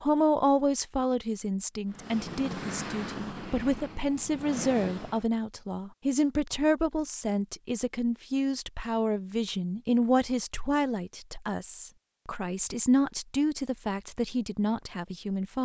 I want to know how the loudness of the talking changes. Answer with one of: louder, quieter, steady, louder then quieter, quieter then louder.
steady.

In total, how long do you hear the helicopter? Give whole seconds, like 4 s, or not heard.
3 s.